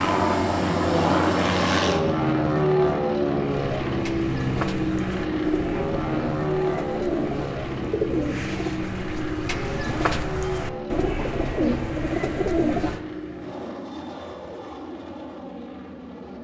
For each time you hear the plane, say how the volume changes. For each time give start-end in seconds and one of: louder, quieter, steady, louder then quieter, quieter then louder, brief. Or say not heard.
0.0-16.4 quieter.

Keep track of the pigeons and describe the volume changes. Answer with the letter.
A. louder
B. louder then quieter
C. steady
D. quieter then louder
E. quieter
A.